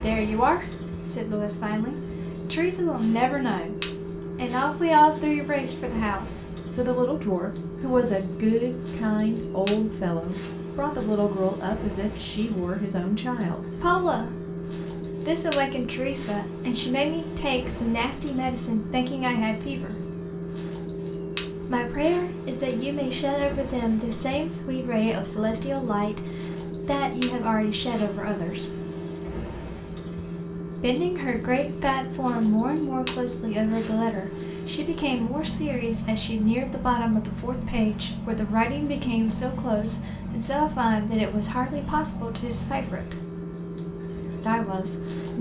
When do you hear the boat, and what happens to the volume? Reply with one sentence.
You can hear the boat from 0.0 to 45.3 s, at a steady volume.